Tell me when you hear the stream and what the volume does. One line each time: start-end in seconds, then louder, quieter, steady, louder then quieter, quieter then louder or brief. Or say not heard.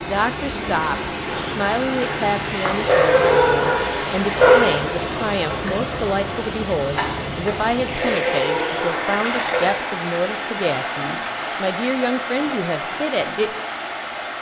0.0-14.3 steady.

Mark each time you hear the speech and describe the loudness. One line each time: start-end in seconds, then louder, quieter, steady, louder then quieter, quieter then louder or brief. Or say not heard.
0.0-13.6 steady.